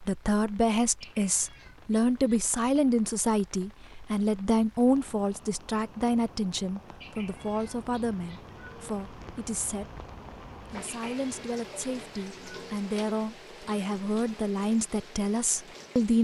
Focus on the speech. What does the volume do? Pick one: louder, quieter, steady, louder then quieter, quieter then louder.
quieter then louder.